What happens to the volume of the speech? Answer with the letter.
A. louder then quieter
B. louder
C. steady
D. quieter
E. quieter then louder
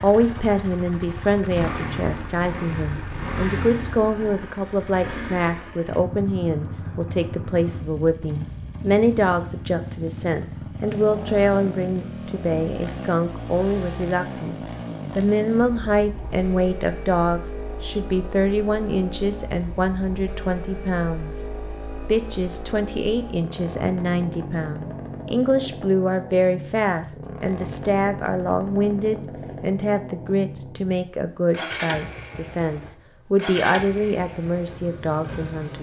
C.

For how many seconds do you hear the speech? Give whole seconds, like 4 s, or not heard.
36 s.